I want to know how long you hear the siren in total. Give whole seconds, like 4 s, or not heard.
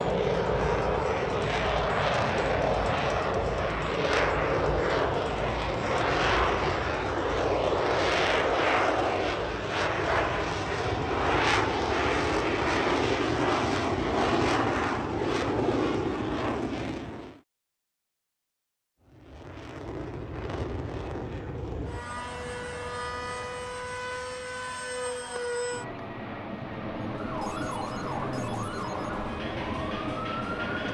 4 s.